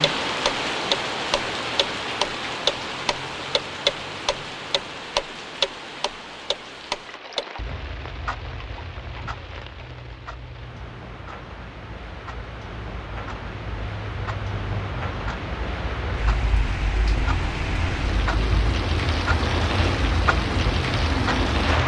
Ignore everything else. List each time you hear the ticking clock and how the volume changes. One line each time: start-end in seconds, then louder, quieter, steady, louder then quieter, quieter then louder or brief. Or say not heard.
0.0-21.8 quieter then louder.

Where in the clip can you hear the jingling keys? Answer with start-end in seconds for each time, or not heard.
not heard.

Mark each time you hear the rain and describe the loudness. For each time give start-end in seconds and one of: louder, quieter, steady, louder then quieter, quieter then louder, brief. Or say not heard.
0.0-21.8 quieter then louder.